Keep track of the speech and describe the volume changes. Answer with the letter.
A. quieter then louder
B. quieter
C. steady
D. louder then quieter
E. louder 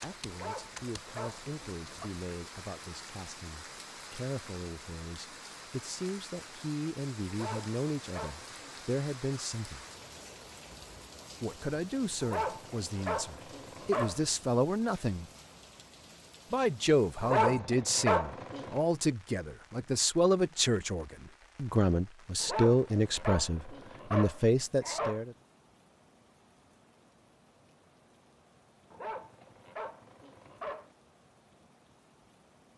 E.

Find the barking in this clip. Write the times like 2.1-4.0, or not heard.
0.3-2.1, 7.3-8.9, 12.2-14.2, 17.2-18.8, 22.4-25.2, 28.9-30.9.